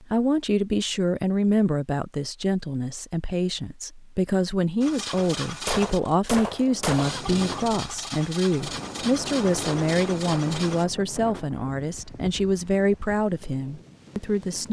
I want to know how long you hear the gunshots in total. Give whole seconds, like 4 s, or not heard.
2 s.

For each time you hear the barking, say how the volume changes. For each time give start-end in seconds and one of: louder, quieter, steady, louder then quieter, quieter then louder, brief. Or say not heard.
not heard.